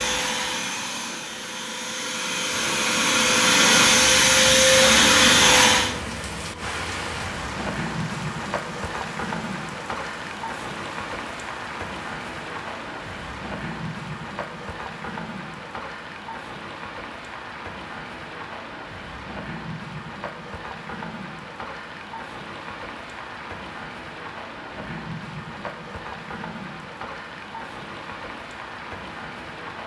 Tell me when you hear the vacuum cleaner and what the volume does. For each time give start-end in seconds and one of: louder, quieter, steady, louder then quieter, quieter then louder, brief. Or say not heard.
0.0-5.9 louder.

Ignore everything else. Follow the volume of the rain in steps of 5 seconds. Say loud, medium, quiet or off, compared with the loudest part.
medium, loud, loud, medium, medium, medium.